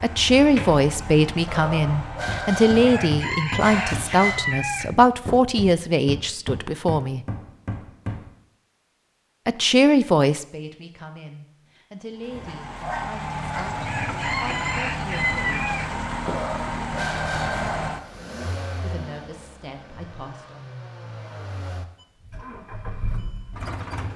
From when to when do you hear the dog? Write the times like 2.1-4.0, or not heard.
1.4-4.4, 12.2-13.8, 16.2-18.1.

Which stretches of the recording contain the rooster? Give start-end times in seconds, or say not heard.
2.7-5.4, 13.7-16.4.